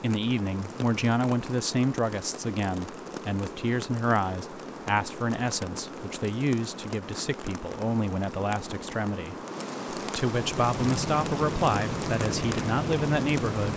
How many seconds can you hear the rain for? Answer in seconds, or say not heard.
14 s.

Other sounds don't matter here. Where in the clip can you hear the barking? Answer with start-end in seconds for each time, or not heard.
not heard.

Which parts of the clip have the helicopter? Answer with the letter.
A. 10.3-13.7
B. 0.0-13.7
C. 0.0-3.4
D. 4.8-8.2
A.